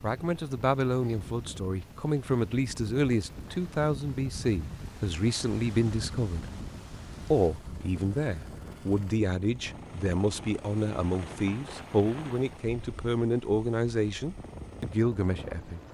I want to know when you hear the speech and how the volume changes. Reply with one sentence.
You can hear the speech from 0.0 to 6.5 s, at a steady volume; and from 7.3 to 15.8 s, at a steady volume.